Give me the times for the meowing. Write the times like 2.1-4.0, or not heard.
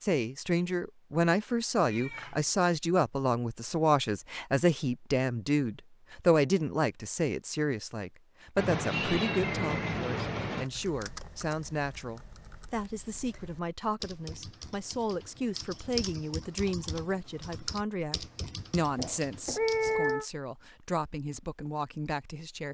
1.9-2.5, 8.6-10.7, 18.8-20.2.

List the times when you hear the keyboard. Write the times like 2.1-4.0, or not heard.
10.5-20.1.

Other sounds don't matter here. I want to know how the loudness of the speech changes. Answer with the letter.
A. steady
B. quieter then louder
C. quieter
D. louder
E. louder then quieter
C.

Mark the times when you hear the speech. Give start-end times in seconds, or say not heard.
0.0-22.6.